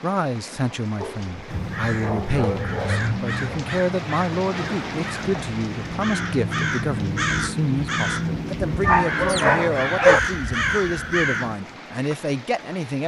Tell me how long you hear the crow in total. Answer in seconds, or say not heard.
10 s.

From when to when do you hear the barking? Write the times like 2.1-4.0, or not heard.
1.0-3.6, 8.8-10.2.